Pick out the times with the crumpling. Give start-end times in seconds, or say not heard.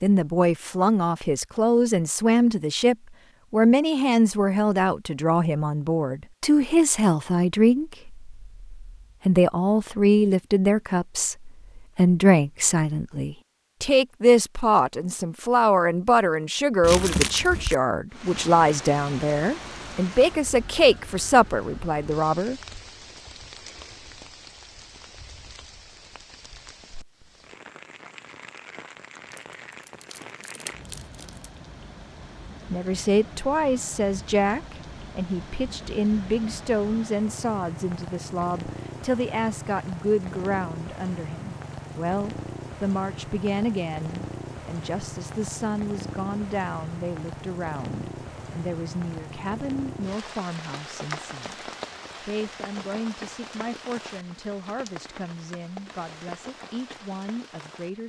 16.8-17.8, 29.3-31.5.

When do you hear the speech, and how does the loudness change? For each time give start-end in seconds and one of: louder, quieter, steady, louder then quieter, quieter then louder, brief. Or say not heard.
0.0-22.6 steady
32.7-58.0 quieter.